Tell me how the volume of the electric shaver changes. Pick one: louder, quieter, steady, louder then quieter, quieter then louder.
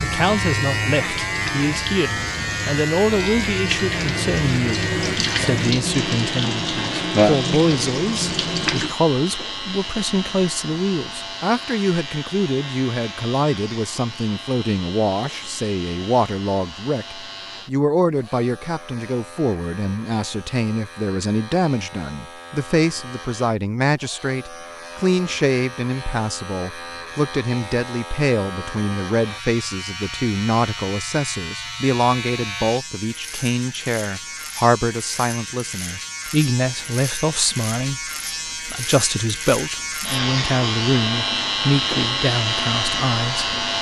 quieter then louder.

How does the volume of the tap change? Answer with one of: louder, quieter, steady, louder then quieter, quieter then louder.
louder.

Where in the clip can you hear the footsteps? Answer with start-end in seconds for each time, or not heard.
not heard.